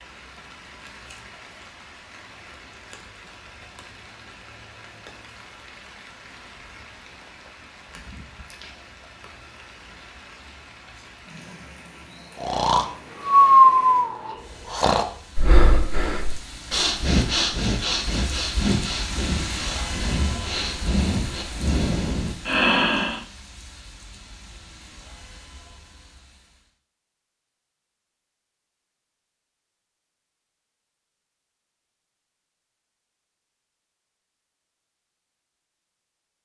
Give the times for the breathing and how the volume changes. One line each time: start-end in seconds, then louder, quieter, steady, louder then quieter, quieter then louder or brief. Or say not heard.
12.4-23.2 quieter then louder.